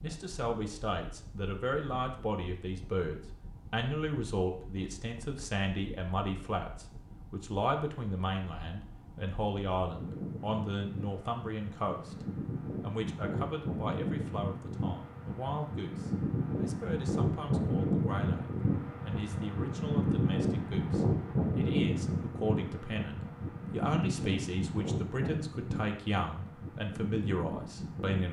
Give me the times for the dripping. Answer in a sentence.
The dripping can't be heard in this clip.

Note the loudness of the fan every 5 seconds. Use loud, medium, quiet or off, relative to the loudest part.
quiet, quiet, medium, loud, loud, medium.